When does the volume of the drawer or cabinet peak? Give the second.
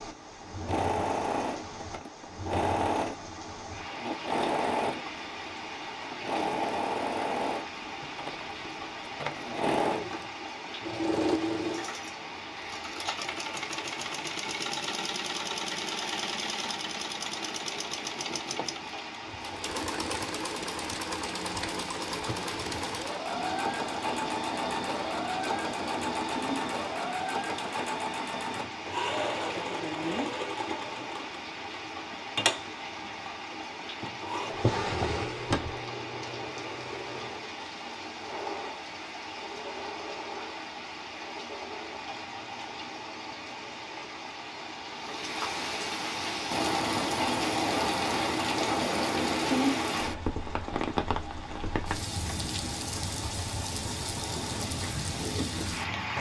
35 s.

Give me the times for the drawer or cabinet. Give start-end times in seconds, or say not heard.
22.4-22.9, 34.5-35.8.